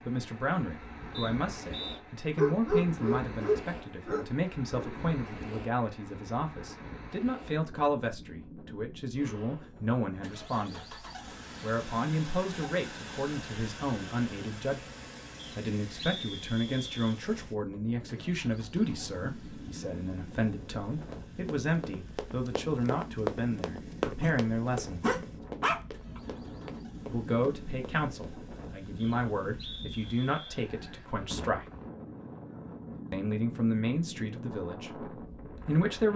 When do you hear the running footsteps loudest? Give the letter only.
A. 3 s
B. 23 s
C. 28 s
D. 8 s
B.